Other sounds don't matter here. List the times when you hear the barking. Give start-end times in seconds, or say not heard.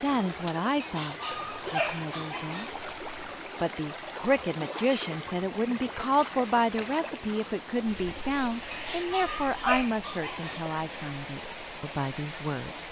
0.8-2.7, 8.7-10.6.